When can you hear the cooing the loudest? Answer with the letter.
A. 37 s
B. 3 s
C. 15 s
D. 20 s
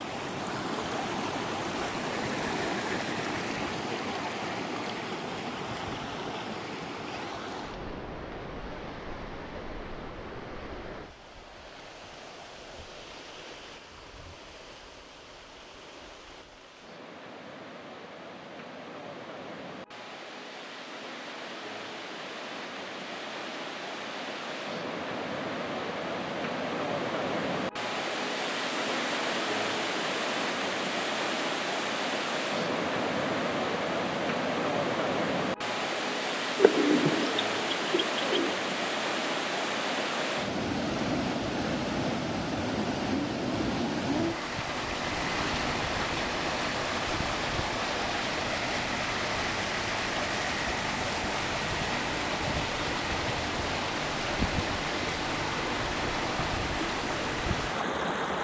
A.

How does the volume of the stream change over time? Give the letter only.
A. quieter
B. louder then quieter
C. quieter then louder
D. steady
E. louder
C.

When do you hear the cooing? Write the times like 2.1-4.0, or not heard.
36.5-38.5.